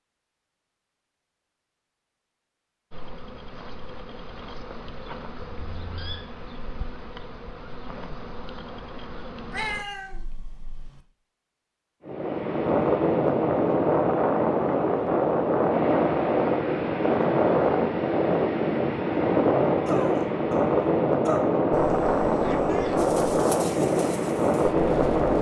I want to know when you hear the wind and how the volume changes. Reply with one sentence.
You can hear the wind from 12.1 to 25.3 s, at a steady volume.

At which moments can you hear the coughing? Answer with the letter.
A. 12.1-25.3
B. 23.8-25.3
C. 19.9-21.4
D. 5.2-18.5
C.